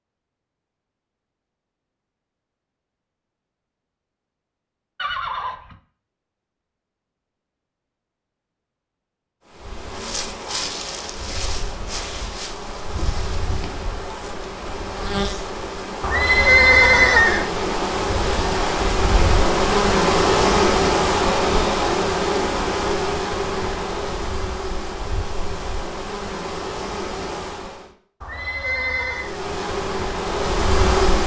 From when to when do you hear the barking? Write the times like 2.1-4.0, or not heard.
not heard.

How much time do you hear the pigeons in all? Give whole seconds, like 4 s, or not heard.
not heard.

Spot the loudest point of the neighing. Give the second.
17 s.